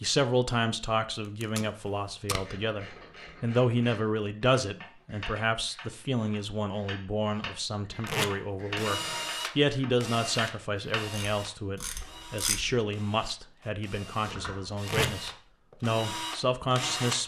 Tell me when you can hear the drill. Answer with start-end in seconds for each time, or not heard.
8.6-17.2.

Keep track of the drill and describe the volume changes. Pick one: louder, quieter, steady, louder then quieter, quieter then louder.
quieter then louder.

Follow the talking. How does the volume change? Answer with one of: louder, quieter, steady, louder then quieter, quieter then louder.
steady.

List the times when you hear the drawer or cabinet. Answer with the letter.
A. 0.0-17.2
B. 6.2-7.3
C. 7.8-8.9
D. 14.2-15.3
D.